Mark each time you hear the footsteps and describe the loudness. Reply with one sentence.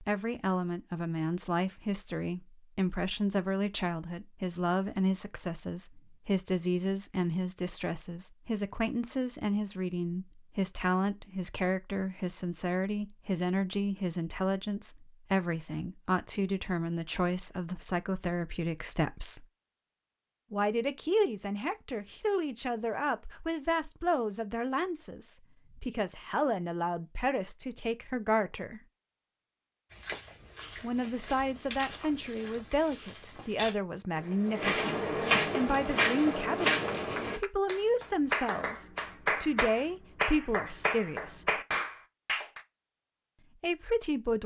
The footsteps can be heard from 29.9 to 37.4 s, getting louder.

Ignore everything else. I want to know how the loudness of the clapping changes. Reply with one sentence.
The volume of the clapping goes up.